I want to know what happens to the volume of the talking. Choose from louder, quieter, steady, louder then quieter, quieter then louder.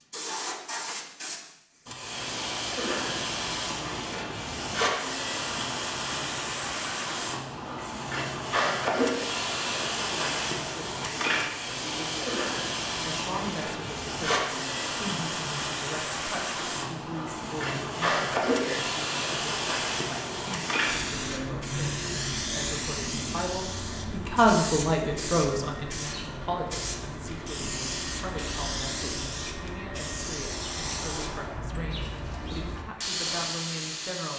louder then quieter.